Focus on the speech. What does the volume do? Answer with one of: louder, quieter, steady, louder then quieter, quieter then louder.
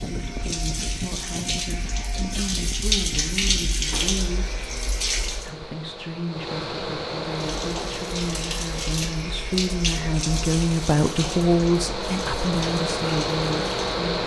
louder.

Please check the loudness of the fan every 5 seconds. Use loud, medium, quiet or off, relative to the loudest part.
medium, medium, loud.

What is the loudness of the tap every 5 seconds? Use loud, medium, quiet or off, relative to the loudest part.
loud, loud, medium.